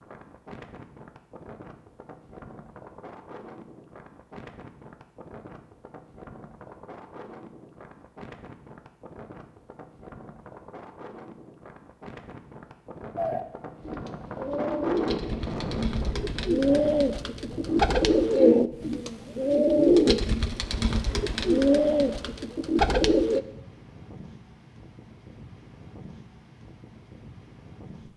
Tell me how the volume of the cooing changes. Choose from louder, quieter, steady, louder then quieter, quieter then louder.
louder.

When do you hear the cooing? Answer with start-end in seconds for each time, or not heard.
13.2-23.4.